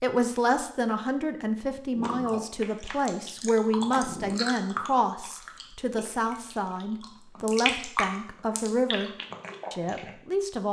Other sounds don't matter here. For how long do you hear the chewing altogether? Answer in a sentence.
You can hear the chewing for 8 seconds altogether.